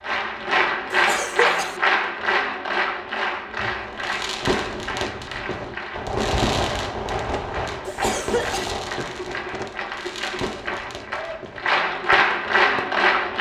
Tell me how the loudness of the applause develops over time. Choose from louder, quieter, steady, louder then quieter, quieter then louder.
quieter then louder.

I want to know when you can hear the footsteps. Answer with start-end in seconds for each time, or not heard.
not heard.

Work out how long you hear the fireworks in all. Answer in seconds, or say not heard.
9 s.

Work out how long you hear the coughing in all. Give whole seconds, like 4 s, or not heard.
2 s.